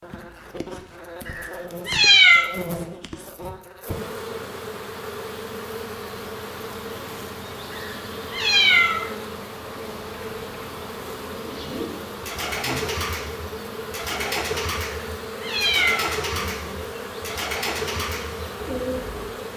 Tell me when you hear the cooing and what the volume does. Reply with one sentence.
You can hear the cooing from 11.4 to 19.3 s, at a steady volume.